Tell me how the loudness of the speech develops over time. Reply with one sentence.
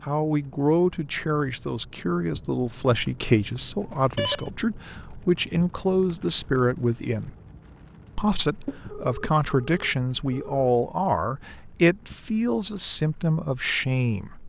The volume of the speech stays about the same.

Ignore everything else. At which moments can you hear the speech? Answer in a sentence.
The speech can be heard from 0.0 to 7.3 s and from 8.2 to 14.4 s.